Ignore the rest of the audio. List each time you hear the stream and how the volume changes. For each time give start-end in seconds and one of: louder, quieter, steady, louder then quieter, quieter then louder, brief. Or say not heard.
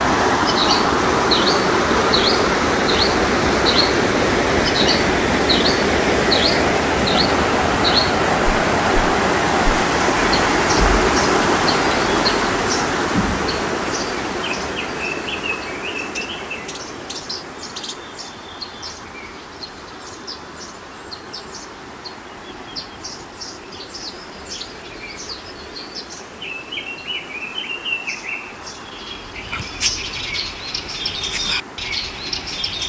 0.0-32.8 quieter.